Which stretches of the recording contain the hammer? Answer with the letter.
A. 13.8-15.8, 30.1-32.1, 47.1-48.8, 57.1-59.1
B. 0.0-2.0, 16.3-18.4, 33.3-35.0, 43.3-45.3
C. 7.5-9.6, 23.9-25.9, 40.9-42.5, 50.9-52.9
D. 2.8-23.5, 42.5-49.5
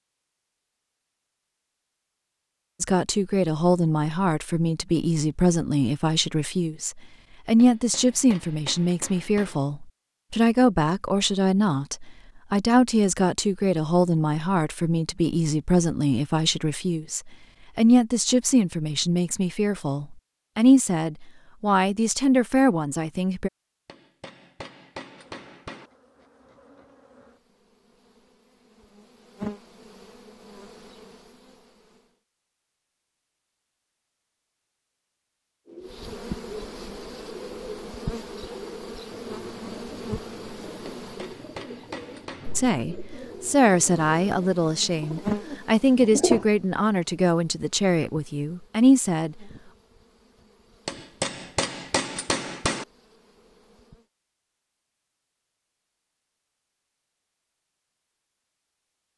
C.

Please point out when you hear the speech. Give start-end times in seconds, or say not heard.
2.8-23.5, 42.5-49.5.